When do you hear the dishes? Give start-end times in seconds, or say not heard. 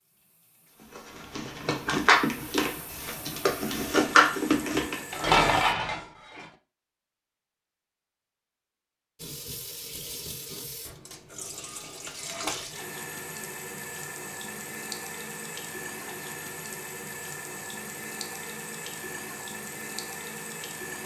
0.8-6.5.